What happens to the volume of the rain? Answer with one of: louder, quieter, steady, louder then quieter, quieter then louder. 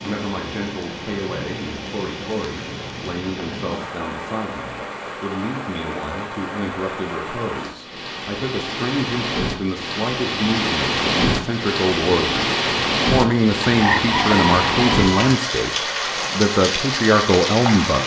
louder.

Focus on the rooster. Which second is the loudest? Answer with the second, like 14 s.
14 s.